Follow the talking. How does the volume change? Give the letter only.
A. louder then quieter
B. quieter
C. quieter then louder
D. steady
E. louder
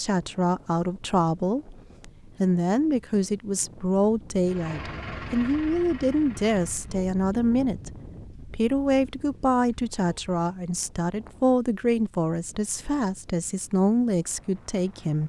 D.